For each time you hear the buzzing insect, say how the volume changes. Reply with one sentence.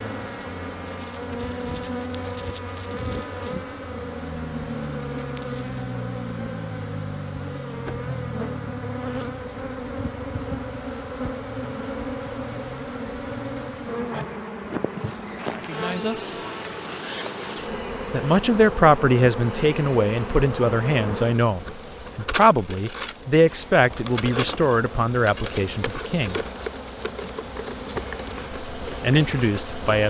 The buzzing insect can be heard from 0.0 to 30.0 s, at a steady volume.